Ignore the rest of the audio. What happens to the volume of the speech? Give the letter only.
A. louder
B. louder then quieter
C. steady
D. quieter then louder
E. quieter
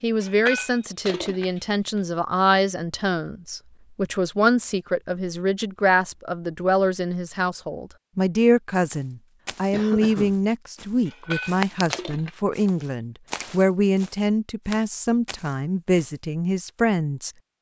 C.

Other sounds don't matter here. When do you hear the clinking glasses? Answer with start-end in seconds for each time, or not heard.
0.2-2.0, 11.1-12.3.